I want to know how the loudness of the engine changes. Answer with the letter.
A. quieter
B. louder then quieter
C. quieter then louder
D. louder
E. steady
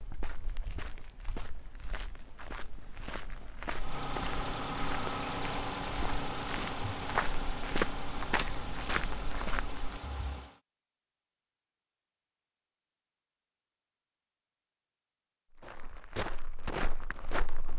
A.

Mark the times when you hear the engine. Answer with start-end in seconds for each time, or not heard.
3.7-10.6.